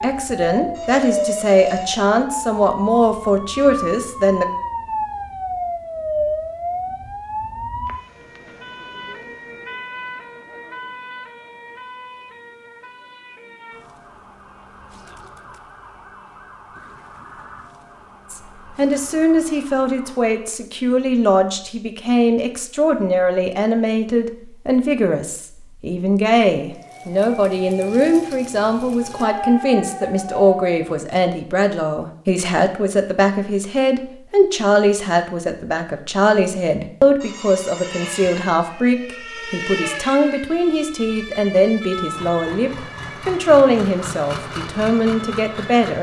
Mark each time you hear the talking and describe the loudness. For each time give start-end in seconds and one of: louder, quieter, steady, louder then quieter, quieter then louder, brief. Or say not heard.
0.0-4.5 steady
18.3-45.9 steady.